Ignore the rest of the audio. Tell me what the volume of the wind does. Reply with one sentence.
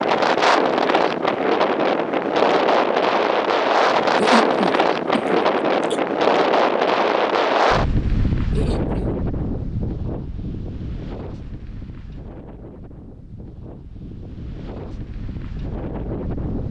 The volume of the wind goes down.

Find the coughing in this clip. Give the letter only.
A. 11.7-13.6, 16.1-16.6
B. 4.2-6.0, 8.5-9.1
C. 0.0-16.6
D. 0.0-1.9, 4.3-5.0
B.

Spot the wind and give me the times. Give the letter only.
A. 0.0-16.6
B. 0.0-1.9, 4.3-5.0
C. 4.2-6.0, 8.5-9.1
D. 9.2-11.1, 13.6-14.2
A.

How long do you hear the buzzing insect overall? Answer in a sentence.
The buzzing insect can't be heard in this clip.